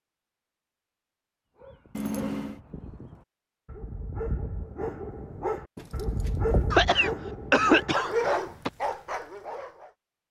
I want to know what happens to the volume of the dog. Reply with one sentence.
The volume of the dog goes up.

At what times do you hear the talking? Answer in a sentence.
The talking can't be heard in this clip.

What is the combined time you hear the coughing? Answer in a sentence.
You can hear the coughing for 2 seconds altogether.